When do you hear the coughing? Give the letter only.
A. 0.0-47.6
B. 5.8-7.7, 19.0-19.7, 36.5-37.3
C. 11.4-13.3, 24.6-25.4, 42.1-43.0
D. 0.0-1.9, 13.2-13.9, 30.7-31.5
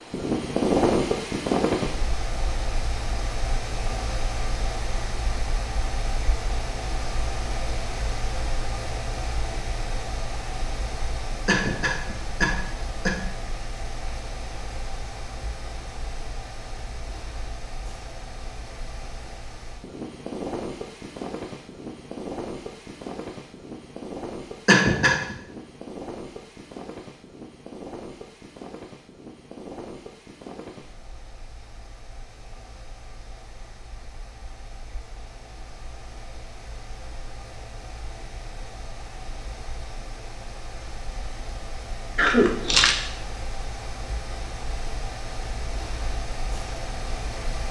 C.